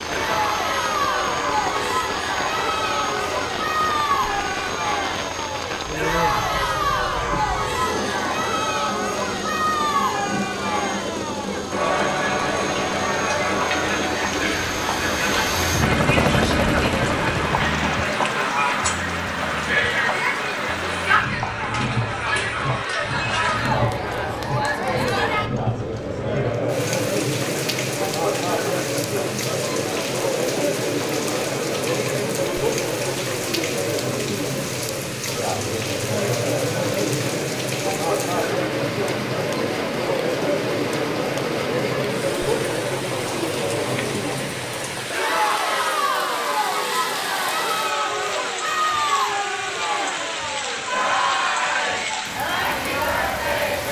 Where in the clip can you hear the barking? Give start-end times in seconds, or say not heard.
not heard.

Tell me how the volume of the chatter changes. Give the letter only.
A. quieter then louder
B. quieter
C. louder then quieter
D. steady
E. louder
D.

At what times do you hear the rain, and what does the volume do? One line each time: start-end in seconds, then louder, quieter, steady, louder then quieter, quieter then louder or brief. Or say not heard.
0.0-53.8 steady.